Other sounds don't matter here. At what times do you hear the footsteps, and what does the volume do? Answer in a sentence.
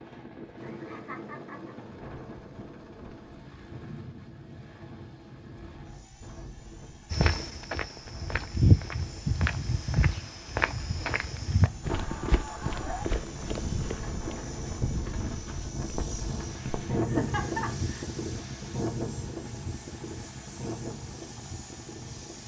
You can hear the footsteps from 7.1 to 16.9 s, getting quieter.